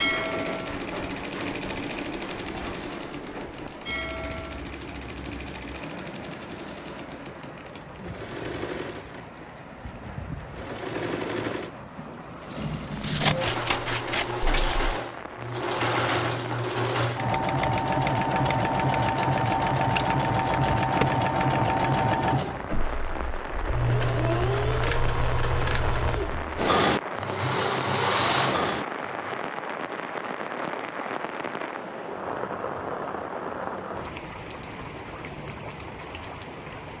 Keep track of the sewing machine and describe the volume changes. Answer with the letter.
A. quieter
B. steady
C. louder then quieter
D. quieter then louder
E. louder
E.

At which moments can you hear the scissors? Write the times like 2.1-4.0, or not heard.
13.0-14.9, 19.8-21.1.